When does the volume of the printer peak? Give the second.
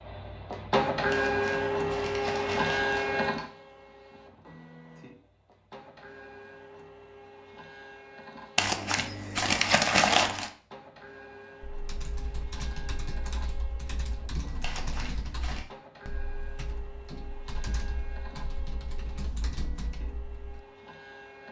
1 s.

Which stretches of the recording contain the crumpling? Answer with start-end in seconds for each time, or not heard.
1.1-3.5, 8.6-10.5, 14.6-15.7.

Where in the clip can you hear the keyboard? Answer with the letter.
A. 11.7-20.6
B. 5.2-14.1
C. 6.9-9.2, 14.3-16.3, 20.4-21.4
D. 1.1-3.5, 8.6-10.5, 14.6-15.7
A.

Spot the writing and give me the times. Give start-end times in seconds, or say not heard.
not heard.